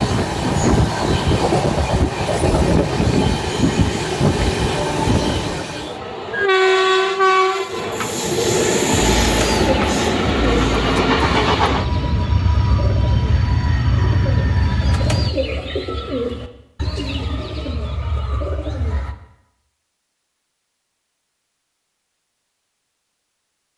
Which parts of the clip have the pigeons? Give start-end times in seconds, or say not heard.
9.2-19.1.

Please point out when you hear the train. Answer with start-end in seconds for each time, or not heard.
0.0-15.3.